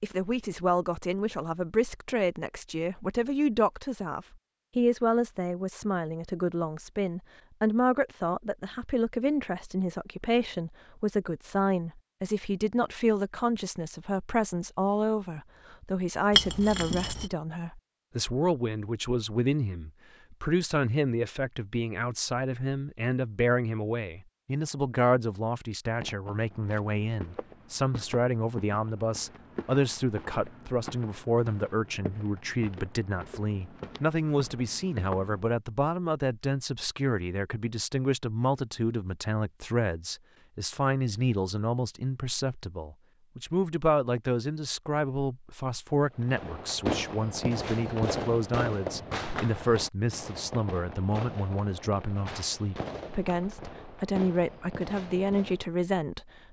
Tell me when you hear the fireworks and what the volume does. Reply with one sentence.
You can hear the fireworks from 46.2 to 55.6 s, getting quieter.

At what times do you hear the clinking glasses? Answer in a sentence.
The clinking glasses can be heard from 16.3 to 17.3 s.